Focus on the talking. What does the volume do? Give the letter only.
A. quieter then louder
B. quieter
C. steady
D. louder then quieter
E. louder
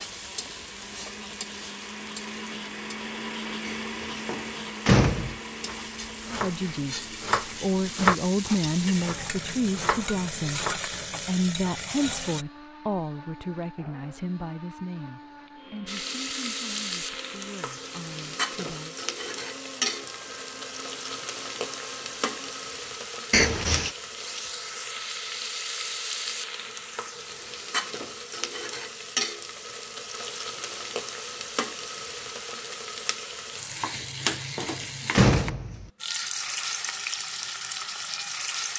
B.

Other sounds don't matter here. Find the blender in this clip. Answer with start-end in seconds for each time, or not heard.
0.0-22.8.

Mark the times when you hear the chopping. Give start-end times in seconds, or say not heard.
5.7-10.8.